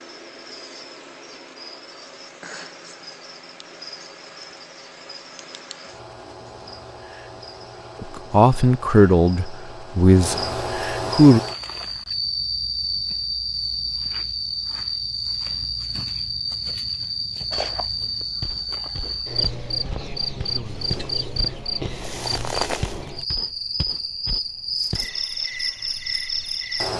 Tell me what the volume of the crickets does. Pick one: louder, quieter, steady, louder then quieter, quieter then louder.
louder.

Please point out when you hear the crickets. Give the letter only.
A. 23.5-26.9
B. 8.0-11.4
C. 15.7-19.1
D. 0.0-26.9
D.